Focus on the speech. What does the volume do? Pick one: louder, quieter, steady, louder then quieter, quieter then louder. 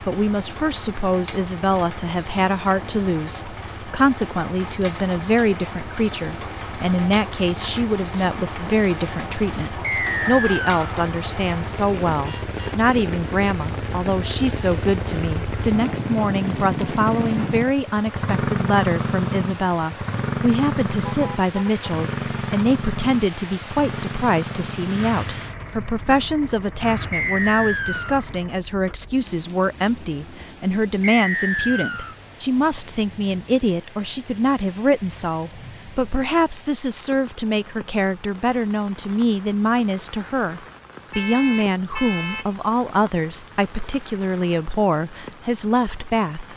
steady.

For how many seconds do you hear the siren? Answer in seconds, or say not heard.
not heard.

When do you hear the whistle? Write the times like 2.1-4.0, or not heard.
9.8-10.8, 27.1-28.2, 31.0-32.1.